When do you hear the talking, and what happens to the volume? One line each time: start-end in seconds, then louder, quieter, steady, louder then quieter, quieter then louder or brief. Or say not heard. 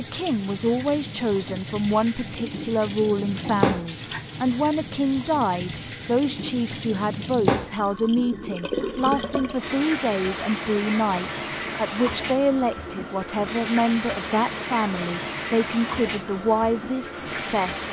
0.0-17.8 steady.